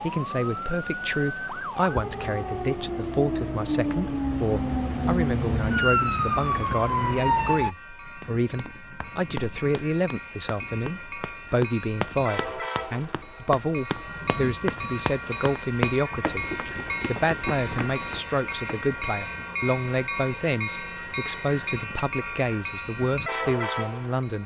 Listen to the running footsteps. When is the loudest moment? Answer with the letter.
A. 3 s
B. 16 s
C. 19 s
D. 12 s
B.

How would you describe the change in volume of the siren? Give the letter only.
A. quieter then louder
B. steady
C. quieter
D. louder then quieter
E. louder
E.